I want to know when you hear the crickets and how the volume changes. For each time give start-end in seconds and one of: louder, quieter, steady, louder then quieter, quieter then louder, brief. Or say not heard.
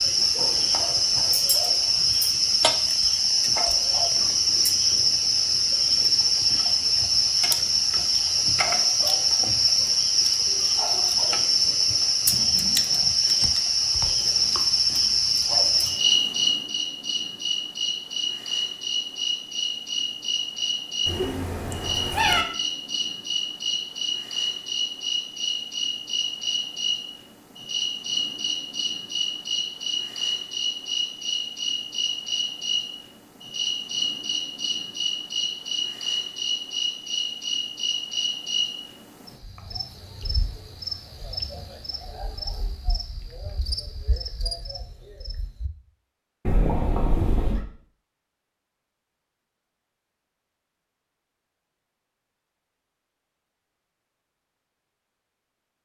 0.0-45.7 quieter.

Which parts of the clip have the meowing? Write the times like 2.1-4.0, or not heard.
21.1-22.4, 46.5-47.6.